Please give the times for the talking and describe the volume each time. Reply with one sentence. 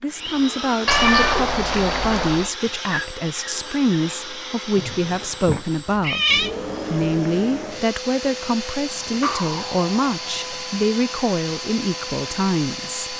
You can hear the talking from 0.0 to 13.1 s, at a steady volume.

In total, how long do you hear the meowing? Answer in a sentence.
You can hear the meowing for 5 seconds altogether.